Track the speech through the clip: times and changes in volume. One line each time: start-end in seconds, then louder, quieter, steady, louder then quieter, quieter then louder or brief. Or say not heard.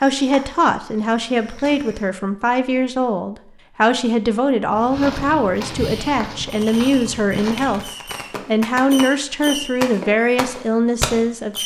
0.0-11.6 steady.